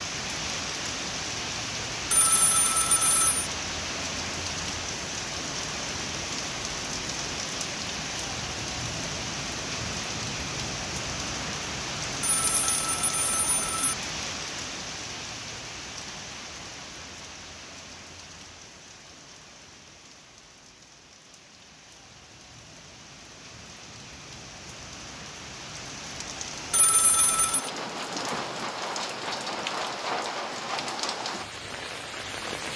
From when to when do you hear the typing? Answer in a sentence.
You can't hear the typing here.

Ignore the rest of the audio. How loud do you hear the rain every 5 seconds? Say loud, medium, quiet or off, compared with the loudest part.
loud, loud, loud, medium, quiet, loud, loud.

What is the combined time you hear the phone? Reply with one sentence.
The phone can be heard for 4 seconds in total.